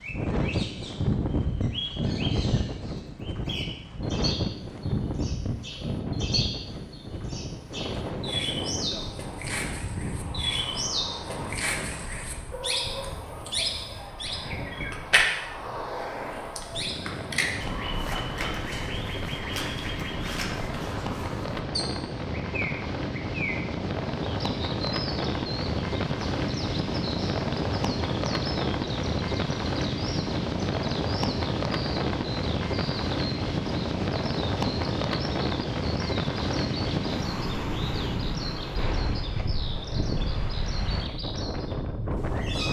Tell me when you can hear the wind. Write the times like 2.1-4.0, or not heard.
0.0-42.6.